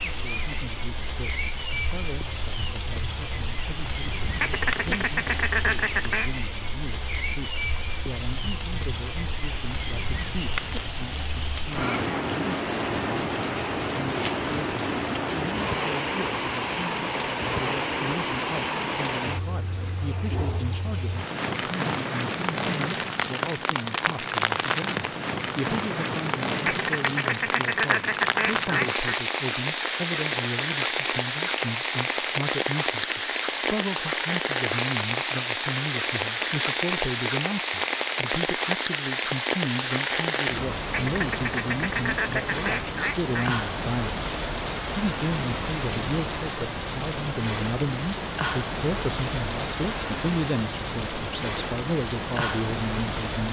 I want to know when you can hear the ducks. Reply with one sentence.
The ducks can be heard from 4.4 to 6.3 s, from 26.6 to 29.2 s and from 40.9 to 43.5 s.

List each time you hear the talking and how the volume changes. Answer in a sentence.
You can hear the talking from 0.1 to 44.2 s, getting louder; and from 45.0 to 53.4 s, at a steady volume.